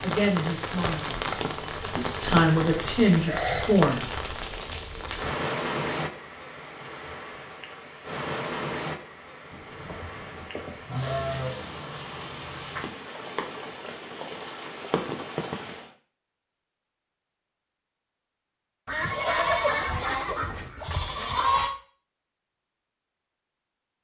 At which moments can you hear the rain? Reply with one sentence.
You can hear the rain from 0.0 to 15.9 s.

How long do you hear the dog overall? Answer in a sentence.
You can't hear the dog here.